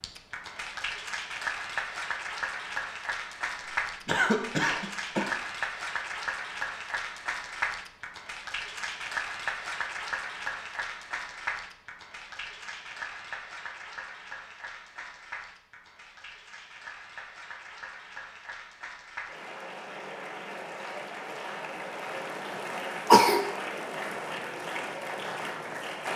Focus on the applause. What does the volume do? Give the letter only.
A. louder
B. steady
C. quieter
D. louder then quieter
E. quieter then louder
E.